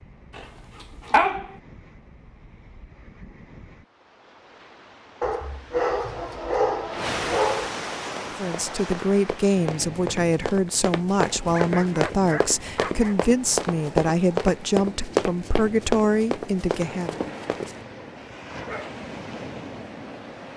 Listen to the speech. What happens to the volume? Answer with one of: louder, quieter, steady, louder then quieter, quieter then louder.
steady.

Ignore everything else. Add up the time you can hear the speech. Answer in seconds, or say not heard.
9 s.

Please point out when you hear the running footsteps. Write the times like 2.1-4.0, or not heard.
8.0-17.8.